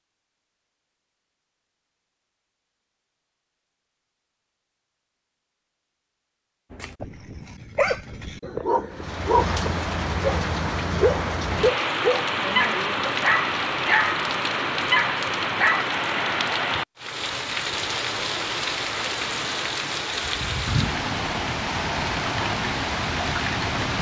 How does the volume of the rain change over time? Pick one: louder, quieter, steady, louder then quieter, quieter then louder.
steady.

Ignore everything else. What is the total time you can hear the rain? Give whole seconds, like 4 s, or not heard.
15 s.